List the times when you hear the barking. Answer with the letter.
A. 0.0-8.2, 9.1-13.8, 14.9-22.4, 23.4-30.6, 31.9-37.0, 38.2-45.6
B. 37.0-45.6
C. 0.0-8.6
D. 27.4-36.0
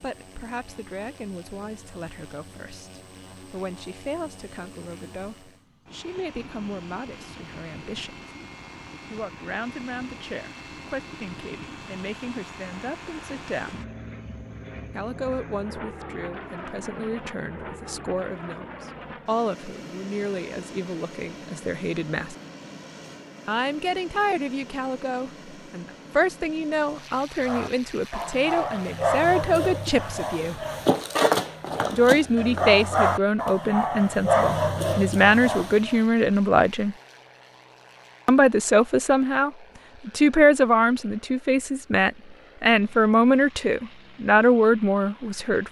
D.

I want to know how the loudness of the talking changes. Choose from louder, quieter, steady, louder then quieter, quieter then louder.
louder.